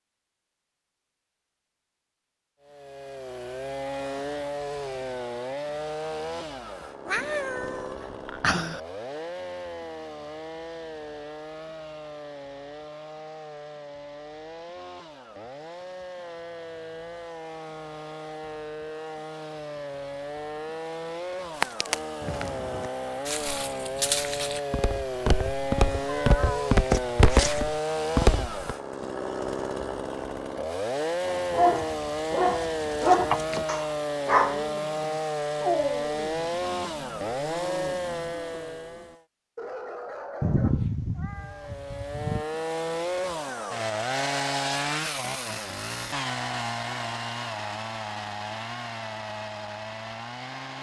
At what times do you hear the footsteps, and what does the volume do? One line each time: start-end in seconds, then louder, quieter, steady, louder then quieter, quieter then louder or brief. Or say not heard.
21.6-28.8 louder.